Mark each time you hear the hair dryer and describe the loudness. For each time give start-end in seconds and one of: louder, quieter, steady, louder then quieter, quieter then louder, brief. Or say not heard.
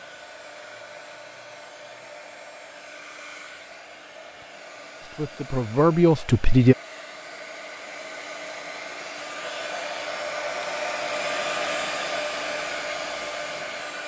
0.0-14.0 louder.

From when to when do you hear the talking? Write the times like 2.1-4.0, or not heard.
5.0-6.8.